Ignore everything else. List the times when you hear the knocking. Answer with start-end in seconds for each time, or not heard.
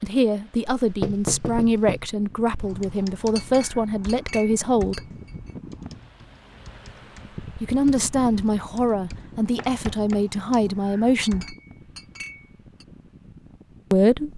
0.8-2.0, 9.6-10.2.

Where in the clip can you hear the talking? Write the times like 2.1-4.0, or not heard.
0.0-5.0, 7.6-11.6, 13.9-14.3.